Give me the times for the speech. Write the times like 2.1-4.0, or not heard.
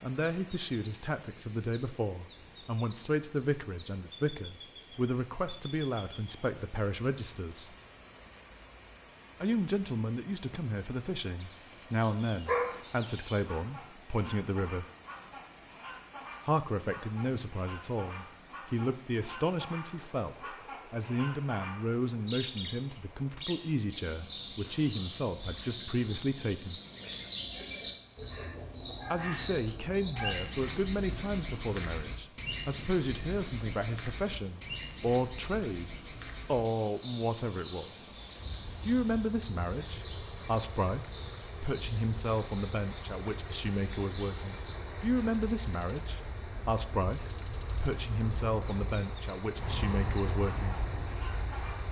0.0-7.8, 9.4-14.8, 16.4-26.8, 29.1-38.1, 38.8-50.8.